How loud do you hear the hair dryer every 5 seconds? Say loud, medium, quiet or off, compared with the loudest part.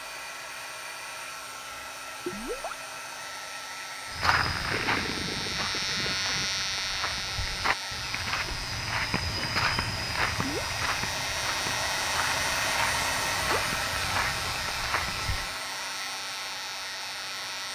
medium, medium, loud, medium.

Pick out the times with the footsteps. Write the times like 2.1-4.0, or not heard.
4.1-15.6.